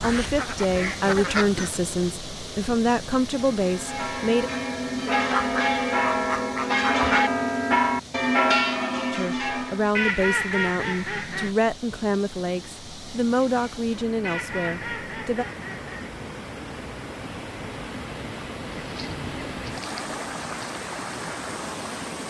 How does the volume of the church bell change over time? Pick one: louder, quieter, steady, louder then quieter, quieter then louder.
louder.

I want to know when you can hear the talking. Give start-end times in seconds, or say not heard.
0.0-4.5, 9.1-15.4.